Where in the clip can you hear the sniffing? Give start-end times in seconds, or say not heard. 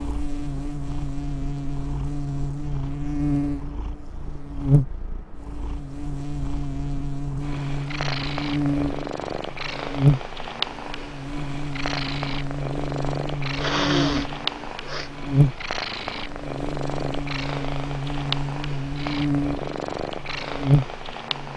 13.6-15.1.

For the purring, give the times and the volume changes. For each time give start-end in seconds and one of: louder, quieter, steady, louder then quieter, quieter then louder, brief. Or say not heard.
0.0-21.5 louder.